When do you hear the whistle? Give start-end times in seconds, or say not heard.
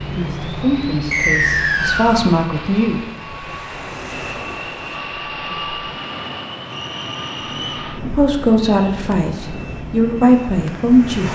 1.1-2.2, 6.7-7.9.